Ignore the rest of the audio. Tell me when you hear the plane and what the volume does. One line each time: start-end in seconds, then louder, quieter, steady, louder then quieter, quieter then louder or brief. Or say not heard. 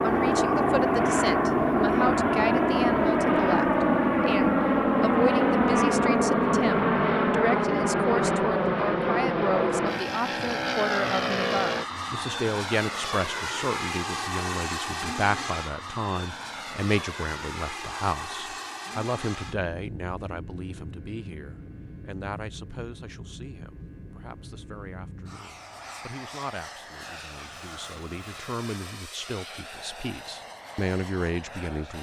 0.0-31.9 quieter.